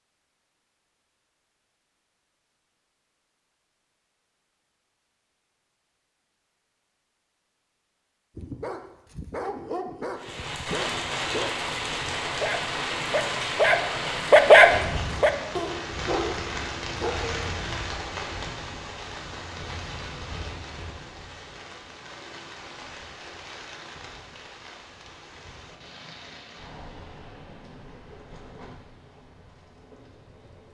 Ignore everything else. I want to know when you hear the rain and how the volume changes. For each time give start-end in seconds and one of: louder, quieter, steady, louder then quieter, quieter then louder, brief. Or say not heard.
10.2-30.6 quieter.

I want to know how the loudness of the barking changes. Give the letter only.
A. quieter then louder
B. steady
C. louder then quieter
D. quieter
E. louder
C.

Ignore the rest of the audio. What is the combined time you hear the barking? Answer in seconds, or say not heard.
9 s.